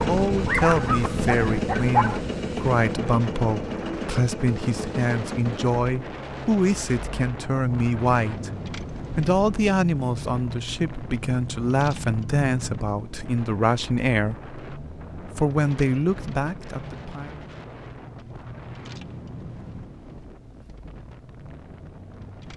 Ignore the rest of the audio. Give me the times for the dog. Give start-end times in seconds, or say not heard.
0.0-2.2.